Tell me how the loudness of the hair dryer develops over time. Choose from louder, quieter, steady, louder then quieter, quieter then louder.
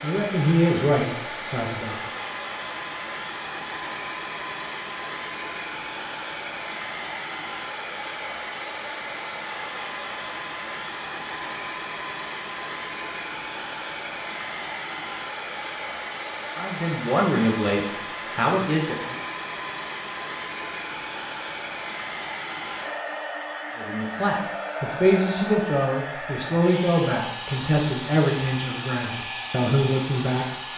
steady.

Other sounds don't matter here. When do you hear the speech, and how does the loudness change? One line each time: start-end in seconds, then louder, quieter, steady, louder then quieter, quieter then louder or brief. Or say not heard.
0.0-1.9 brief
16.6-19.2 brief
23.8-30.7 steady.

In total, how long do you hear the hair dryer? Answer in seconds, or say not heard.
31 s.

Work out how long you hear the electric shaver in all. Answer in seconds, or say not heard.
not heard.